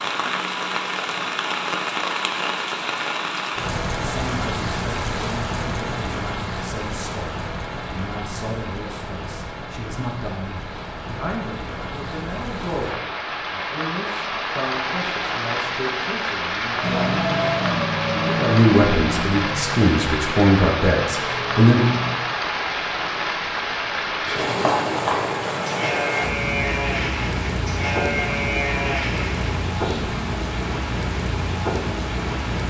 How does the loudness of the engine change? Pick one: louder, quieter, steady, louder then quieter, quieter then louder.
quieter.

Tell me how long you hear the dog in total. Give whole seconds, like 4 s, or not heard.
not heard.